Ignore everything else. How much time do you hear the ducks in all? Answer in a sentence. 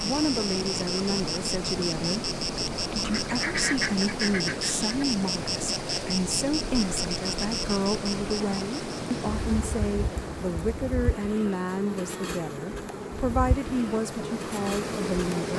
You can hear the ducks for 2 seconds altogether.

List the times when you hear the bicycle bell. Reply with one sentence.
The bicycle bell can't be heard in this clip.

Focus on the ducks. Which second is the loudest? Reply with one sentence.
The loudest moment of the ducks is at 4 seconds.